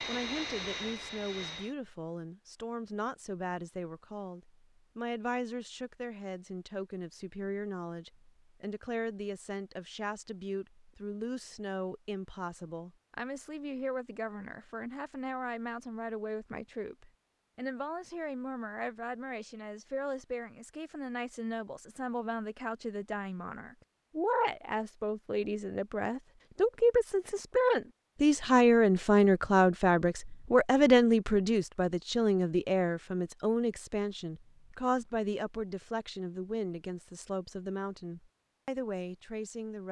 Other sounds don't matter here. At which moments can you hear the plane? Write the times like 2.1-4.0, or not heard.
0.0-1.8.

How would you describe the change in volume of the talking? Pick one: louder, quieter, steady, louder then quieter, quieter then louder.
louder then quieter.